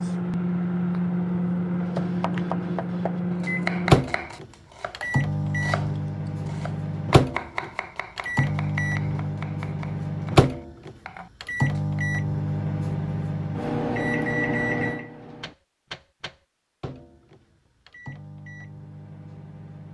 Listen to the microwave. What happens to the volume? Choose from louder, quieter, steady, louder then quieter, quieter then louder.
quieter.